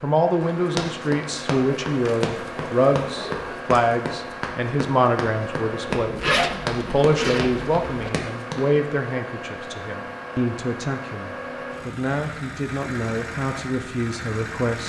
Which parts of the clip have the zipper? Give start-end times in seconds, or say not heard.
6.0-8.1.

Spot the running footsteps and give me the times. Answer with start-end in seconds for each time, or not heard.
0.4-8.7.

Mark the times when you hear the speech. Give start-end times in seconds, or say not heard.
0.0-14.8.